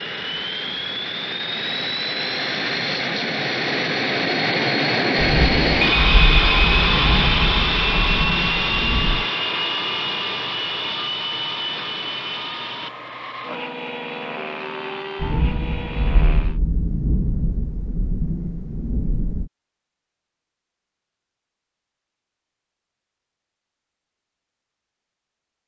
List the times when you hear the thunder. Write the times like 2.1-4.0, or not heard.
5.2-9.2, 15.2-19.5.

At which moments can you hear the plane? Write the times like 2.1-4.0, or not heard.
0.0-16.6.